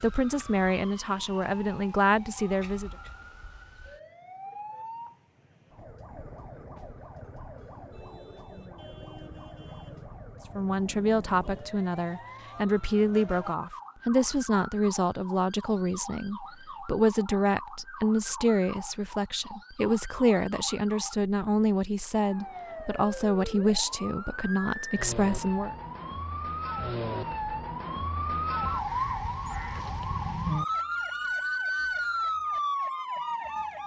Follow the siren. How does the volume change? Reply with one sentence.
The volume of the siren goes up.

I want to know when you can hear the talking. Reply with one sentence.
The talking can be heard from 0.0 to 2.9 s and from 10.6 to 25.8 s.